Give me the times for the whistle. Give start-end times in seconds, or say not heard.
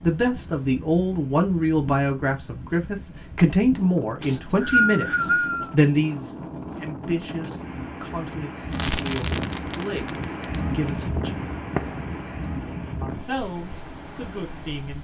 4.2-5.8.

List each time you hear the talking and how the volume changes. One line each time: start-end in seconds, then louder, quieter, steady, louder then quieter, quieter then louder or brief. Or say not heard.
0.0-11.3 quieter
13.0-14.9 brief.